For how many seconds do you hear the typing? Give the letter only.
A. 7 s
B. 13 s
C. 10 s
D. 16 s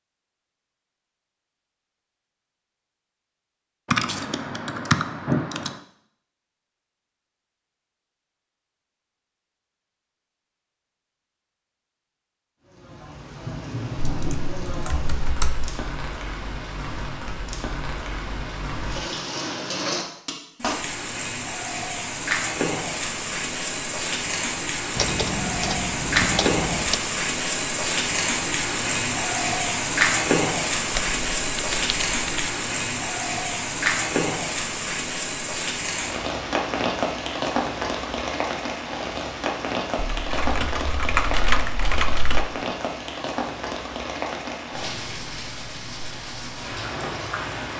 C.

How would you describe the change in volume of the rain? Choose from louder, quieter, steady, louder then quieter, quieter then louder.
louder then quieter.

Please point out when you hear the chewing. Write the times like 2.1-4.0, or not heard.
not heard.